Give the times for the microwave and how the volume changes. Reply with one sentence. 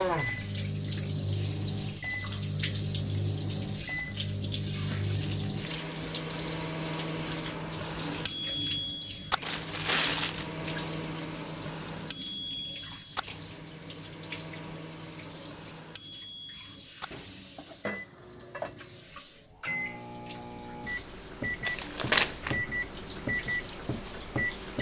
You can hear the microwave from 0.1 to 24.7 s, getting quieter then louder.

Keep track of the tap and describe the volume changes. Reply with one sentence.
The volume of the tap goes down.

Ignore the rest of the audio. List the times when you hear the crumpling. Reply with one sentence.
The crumpling can be heard from 4.9 to 5.7 s, from 9.4 to 10.6 s and from 21.6 to 22.6 s.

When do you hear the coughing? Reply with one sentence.
The coughing can't be heard in this clip.